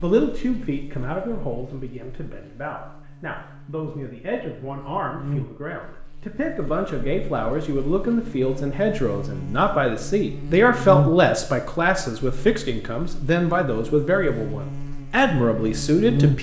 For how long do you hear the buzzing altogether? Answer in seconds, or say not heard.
16 s.